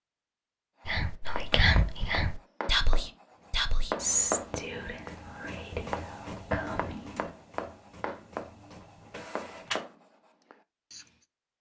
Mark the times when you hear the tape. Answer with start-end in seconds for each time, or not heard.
not heard.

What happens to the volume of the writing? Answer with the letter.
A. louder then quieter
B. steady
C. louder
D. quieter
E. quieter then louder
A.